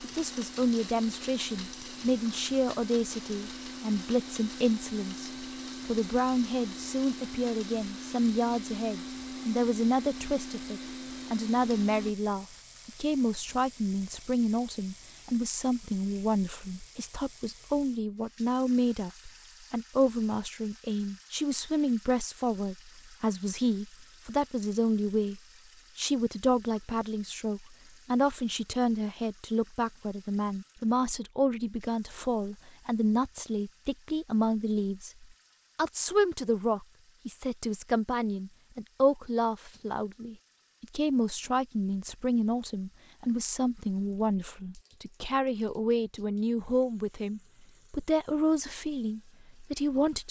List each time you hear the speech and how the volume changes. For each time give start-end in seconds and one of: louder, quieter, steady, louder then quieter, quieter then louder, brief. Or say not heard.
0.0-50.2 steady.